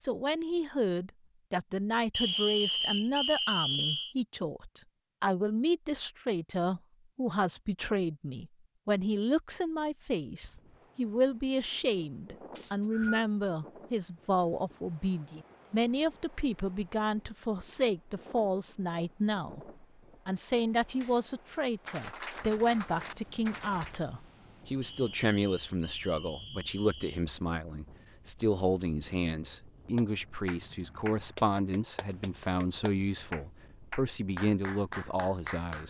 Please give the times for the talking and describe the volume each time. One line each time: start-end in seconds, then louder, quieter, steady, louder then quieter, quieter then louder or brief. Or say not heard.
0.0-35.8 steady.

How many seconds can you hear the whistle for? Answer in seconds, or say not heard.
5 s.